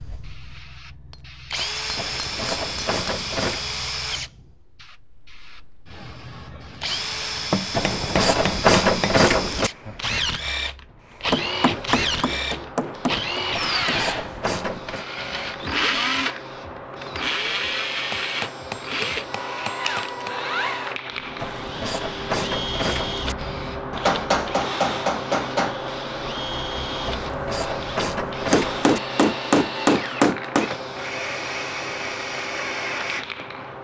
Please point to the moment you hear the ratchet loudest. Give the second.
9 s.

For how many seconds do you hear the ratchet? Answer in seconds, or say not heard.
9 s.